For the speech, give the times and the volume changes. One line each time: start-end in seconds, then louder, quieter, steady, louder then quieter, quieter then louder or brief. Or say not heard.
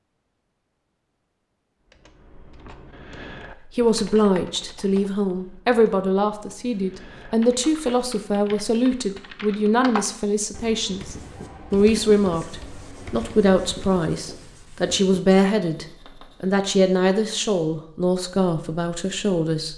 3.8-19.7 steady.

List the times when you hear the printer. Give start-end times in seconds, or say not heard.
not heard.